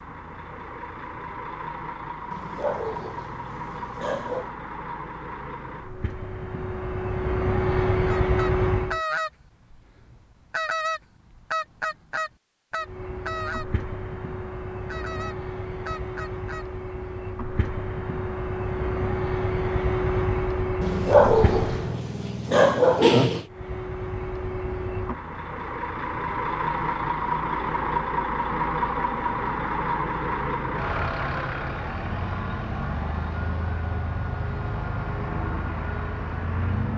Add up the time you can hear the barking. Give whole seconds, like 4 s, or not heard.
5 s.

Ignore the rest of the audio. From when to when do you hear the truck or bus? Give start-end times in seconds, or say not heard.
0.0-9.0, 12.8-22.0, 23.4-36.9.